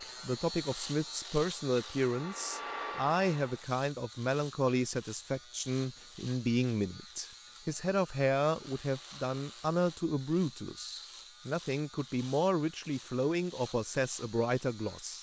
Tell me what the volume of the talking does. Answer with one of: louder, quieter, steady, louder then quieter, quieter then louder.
steady.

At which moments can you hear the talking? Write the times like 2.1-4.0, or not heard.
0.0-15.1.